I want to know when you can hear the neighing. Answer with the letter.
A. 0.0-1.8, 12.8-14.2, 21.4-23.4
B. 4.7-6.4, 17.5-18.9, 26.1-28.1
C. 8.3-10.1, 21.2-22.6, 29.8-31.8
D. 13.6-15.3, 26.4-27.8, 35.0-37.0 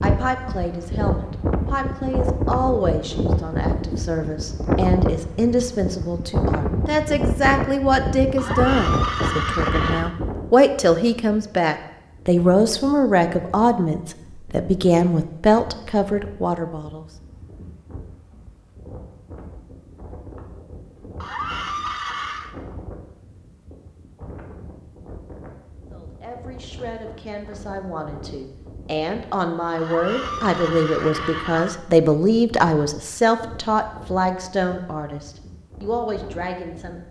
C.